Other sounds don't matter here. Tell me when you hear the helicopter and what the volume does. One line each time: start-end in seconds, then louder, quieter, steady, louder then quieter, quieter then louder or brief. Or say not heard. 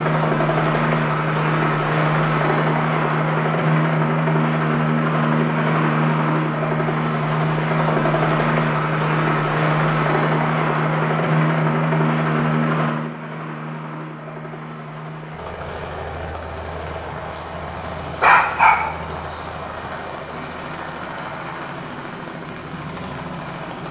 0.0-23.8 quieter.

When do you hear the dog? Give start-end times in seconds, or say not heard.
17.9-19.1.